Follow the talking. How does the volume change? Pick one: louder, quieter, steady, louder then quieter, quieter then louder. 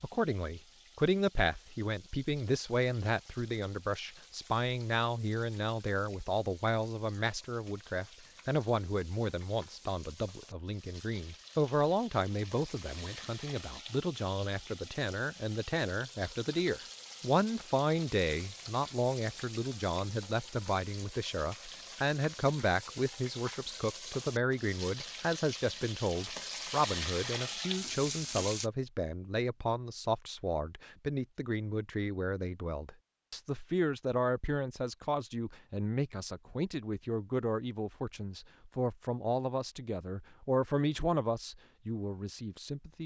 steady.